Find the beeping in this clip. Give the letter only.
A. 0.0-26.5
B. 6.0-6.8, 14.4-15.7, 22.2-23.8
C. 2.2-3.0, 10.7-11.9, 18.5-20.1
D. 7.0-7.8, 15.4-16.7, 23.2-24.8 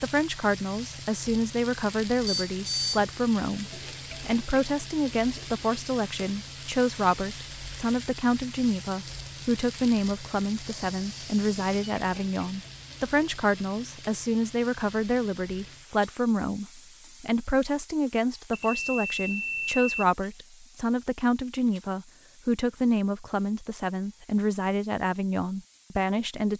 C.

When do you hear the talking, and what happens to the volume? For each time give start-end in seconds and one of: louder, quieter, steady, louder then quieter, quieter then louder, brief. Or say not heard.
0.0-26.5 steady.